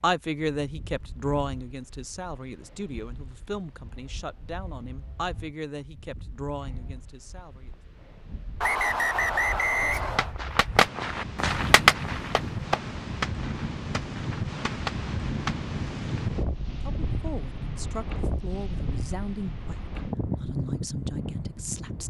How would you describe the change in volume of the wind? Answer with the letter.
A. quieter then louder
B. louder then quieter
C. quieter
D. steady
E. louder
E.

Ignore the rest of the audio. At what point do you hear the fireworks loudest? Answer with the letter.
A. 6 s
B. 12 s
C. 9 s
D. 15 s
B.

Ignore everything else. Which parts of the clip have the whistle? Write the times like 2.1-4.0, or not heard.
8.6-10.3.